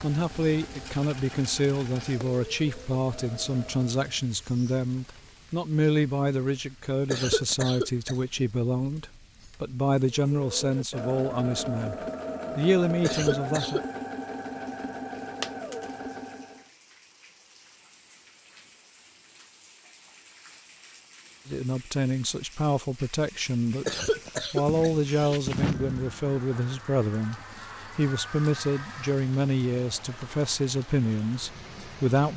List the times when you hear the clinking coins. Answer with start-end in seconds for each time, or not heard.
0.8-2.1, 15.4-15.8, 24.6-26.4.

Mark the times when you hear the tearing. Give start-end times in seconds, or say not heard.
not heard.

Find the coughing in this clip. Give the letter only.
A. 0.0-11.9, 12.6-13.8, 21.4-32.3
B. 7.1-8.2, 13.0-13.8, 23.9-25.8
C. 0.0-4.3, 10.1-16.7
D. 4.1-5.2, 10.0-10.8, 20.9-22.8
B.